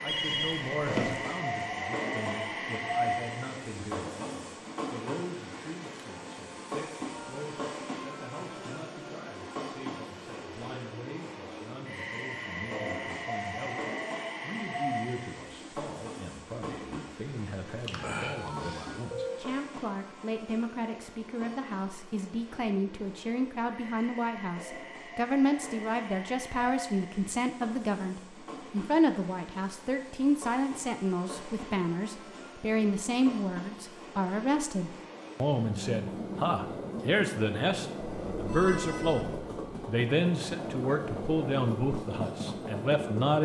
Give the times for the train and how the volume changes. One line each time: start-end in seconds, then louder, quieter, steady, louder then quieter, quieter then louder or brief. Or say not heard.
0.0-43.3 quieter then louder.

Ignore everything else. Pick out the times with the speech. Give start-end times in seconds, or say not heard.
0.0-43.3.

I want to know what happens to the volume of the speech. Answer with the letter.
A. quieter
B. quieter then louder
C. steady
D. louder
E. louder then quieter
D.